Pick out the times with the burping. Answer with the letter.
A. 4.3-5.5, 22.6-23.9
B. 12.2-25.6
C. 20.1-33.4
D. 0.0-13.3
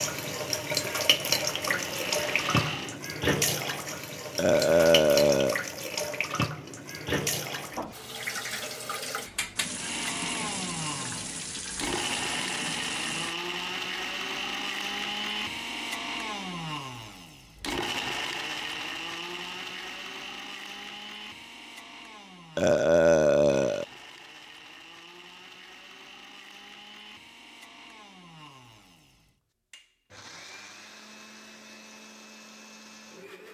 A.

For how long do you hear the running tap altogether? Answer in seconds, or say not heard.
13 s.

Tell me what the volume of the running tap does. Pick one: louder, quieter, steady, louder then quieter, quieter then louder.
quieter.